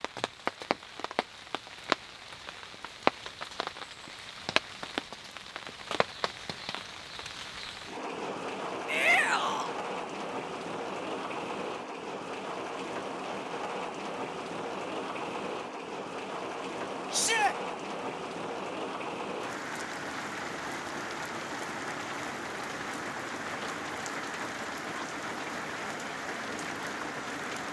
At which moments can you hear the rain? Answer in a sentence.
You can hear the rain from 0.0 to 27.6 s.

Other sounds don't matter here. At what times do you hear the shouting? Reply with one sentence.
The shouting can be heard from 8.8 to 9.7 s and from 17.1 to 17.6 s.